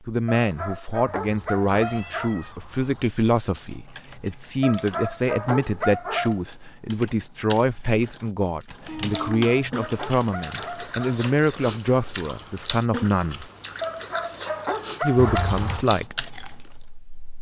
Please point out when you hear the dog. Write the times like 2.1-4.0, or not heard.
0.3-2.4, 4.6-6.3, 9.3-11.2, 13.8-15.6.